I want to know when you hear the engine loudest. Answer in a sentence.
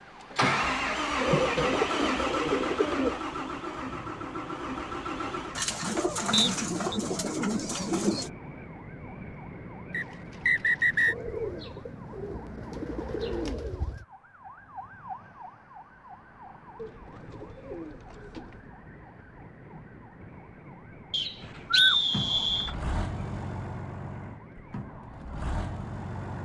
The loudest moment of the engine is at 1 second.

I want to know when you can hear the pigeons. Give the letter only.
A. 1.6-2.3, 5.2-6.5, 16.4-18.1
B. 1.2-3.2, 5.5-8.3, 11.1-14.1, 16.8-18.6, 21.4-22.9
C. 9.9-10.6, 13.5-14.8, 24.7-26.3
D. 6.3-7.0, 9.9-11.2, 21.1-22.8
B.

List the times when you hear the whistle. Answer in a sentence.
The whistle can be heard from 6.3 to 7.0 s, from 9.9 to 11.2 s and from 21.1 to 22.8 s.